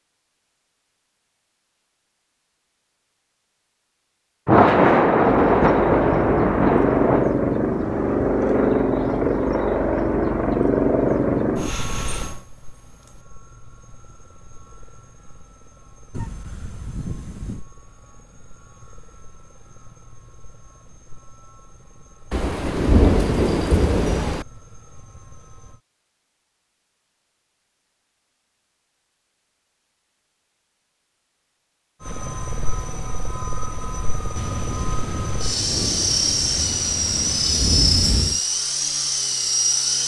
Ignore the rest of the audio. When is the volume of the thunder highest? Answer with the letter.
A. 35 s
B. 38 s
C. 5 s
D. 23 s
C.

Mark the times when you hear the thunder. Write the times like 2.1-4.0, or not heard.
4.5-7.3, 22.3-24.4, 34.4-38.4.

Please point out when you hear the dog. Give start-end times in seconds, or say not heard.
16.1-17.6.